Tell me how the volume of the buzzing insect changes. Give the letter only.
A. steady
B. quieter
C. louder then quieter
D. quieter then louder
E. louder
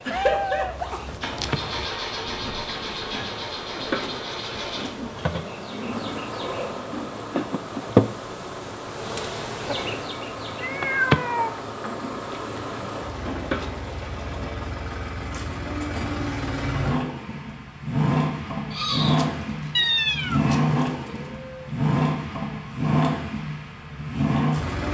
C.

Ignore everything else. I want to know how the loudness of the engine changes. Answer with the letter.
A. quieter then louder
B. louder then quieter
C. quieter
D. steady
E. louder
A.